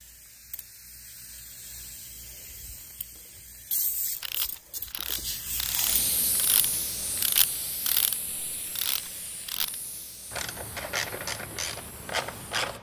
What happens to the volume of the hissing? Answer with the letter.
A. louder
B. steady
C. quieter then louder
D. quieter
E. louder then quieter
E.